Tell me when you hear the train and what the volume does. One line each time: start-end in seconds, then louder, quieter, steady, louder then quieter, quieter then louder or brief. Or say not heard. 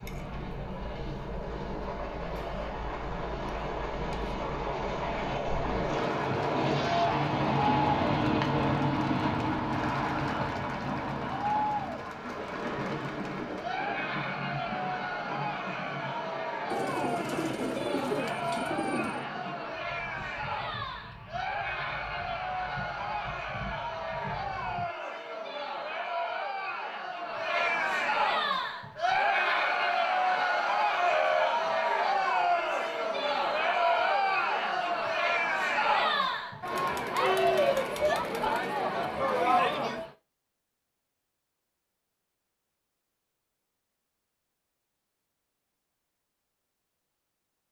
0.0-24.9 louder then quieter.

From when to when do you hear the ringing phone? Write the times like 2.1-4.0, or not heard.
30.9-31.5.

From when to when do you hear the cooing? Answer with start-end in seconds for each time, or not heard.
16.7-19.2.